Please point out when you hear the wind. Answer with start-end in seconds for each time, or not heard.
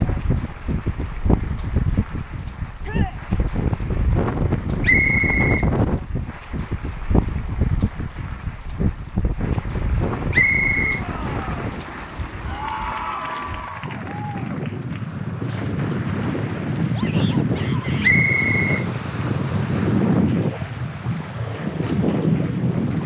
0.0-23.0.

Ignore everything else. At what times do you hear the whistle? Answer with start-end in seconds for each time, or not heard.
4.8-5.7, 10.3-11.0, 18.0-18.9.